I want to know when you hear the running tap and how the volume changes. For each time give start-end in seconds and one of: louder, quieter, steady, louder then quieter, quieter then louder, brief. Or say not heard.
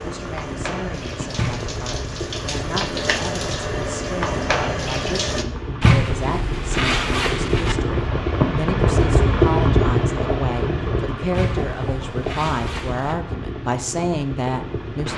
0.0-5.5 louder.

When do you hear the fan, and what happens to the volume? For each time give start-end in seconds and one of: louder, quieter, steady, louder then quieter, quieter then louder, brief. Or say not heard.
0.0-15.1 louder then quieter.